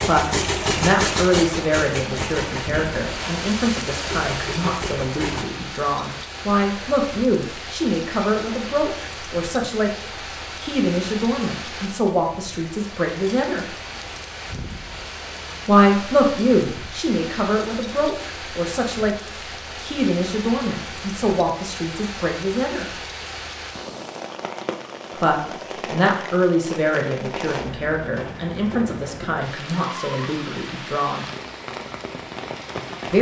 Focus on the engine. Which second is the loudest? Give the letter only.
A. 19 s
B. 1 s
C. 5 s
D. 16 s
B.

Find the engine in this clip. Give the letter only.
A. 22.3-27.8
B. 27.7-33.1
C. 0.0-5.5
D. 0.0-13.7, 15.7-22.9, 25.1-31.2
C.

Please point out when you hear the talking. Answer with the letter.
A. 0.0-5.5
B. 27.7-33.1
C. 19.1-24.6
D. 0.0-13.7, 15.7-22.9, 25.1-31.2
D.